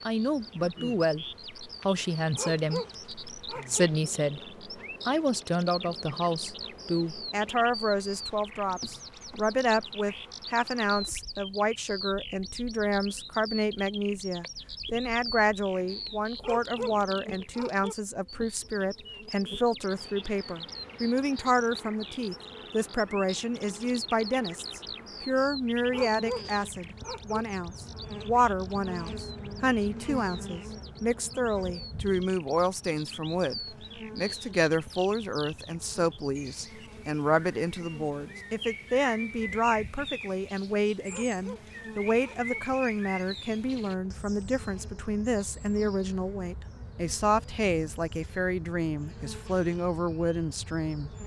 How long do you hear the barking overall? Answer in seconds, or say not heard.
6 s.